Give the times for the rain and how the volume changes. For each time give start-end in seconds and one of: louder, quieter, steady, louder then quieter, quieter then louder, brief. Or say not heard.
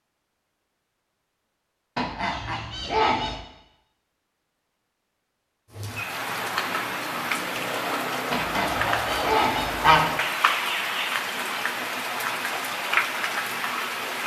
5.7-14.2 steady.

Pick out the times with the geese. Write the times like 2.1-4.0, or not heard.
1.9-3.5, 8.3-10.1.